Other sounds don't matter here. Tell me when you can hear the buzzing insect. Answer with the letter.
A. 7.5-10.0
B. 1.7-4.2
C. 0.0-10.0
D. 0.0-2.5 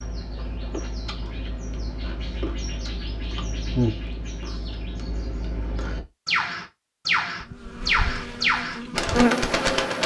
A.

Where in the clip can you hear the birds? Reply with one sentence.
You can hear the birds from 0.0 to 10.0 s.